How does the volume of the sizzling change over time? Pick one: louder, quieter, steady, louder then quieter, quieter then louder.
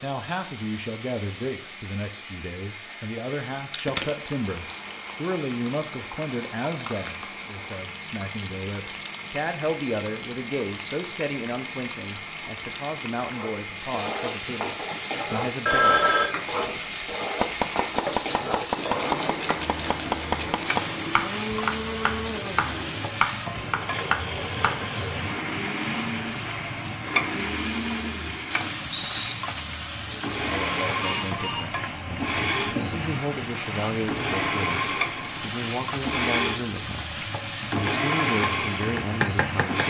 louder.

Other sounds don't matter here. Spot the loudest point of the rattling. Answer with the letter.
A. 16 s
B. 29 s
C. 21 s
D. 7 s
B.